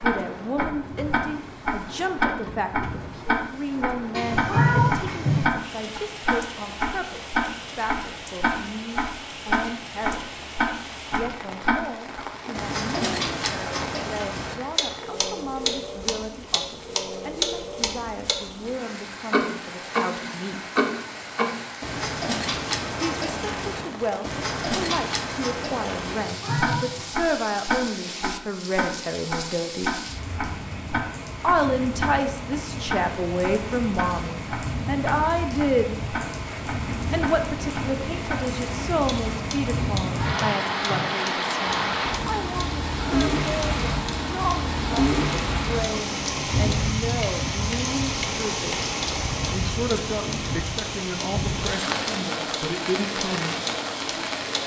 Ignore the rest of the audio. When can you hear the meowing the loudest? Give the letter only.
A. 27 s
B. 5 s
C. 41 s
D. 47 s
B.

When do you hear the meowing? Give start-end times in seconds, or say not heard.
4.1-5.5, 26.1-27.1, 40.0-41.1.